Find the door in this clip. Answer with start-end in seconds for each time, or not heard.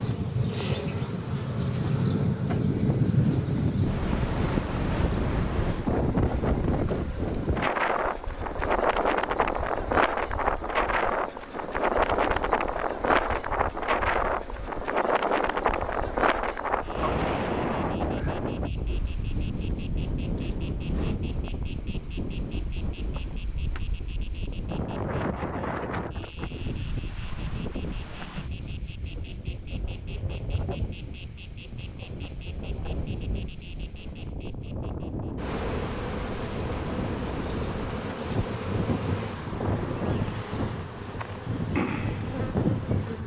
20.4-21.2.